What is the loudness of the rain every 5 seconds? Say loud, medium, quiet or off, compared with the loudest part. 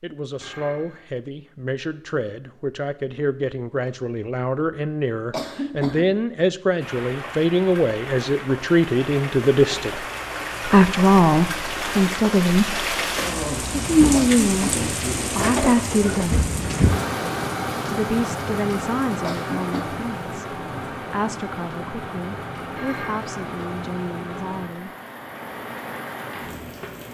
off, medium, loud, loud, medium, medium.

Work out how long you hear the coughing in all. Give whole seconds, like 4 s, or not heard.
2 s.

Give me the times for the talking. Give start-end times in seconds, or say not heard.
0.0-10.1, 10.7-12.9, 13.8-14.8, 15.3-16.4, 17.9-24.9.